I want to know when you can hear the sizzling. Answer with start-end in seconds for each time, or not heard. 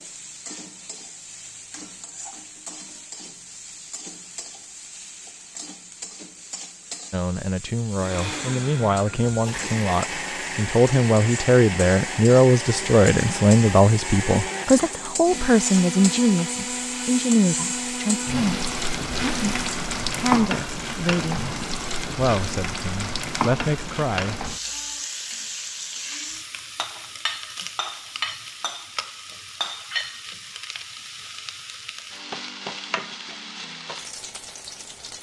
0.0-35.1.